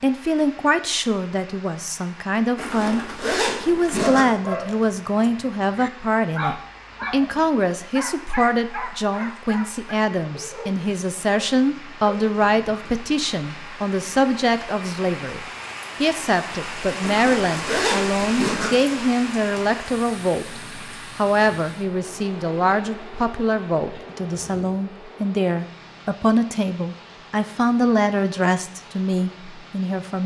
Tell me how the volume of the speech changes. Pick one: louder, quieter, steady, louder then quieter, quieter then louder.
steady.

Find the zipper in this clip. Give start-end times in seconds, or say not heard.
2.5-4.2, 17.0-18.7.